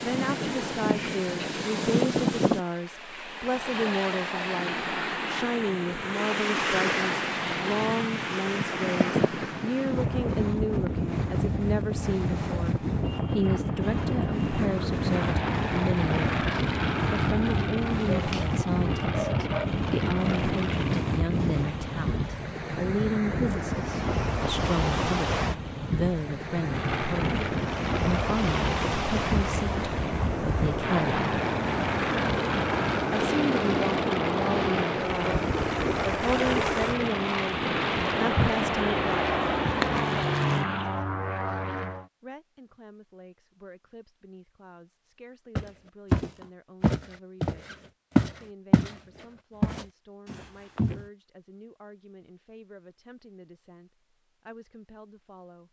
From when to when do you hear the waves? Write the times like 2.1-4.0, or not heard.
0.0-41.0.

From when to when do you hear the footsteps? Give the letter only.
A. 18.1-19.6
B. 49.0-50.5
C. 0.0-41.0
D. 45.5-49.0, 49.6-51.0
D.